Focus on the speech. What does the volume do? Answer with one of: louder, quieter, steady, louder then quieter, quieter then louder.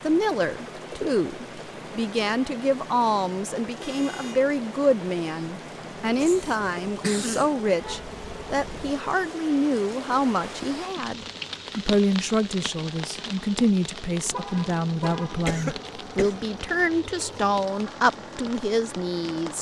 steady.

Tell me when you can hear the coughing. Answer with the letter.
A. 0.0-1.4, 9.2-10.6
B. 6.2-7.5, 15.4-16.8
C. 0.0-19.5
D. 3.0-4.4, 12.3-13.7
B.